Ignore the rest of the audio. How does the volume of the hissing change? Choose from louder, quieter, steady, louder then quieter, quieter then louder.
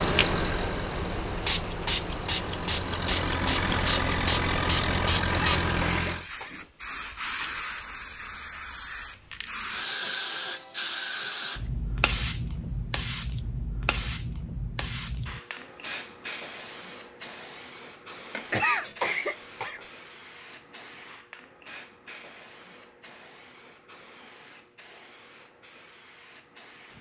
quieter.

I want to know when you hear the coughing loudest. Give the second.
19 s.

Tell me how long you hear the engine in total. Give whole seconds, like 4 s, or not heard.
6 s.